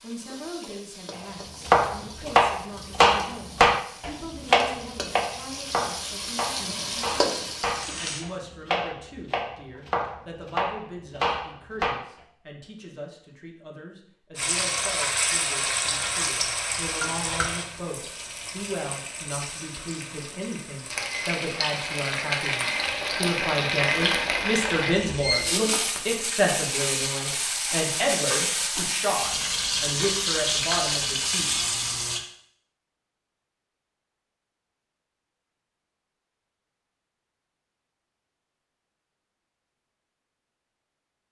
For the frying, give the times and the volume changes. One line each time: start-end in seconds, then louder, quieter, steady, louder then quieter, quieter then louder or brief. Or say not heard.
0.0-8.2 louder
14.3-32.2 quieter then louder.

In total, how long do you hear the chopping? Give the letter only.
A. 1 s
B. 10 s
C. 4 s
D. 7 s
B.